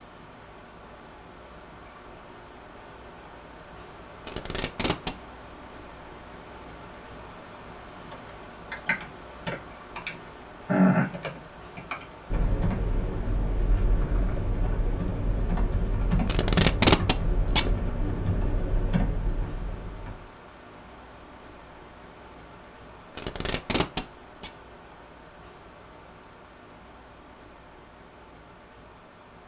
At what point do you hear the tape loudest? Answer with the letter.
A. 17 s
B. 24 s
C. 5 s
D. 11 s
A.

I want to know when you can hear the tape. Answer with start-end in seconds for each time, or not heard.
4.2-5.2, 16.2-17.8, 23.1-24.5.